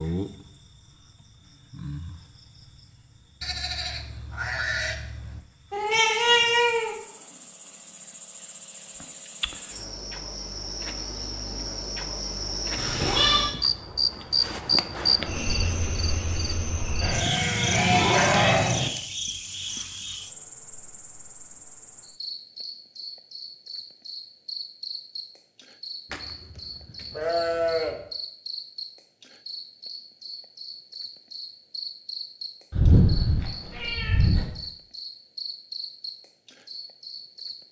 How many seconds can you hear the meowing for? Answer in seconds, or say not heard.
4 s.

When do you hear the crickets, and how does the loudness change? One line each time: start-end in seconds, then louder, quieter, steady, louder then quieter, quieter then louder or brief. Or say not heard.
0.0-37.6 louder then quieter.